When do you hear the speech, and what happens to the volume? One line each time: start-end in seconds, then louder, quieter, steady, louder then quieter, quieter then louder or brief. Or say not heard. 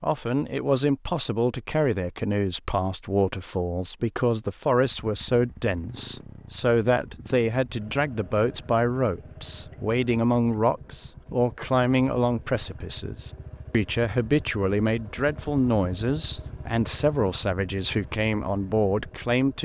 0.0-19.5 steady.